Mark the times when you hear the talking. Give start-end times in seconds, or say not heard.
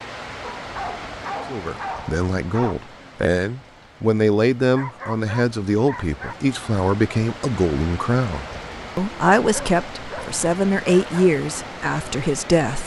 1.5-12.8.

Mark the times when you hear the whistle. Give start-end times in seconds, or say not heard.
not heard.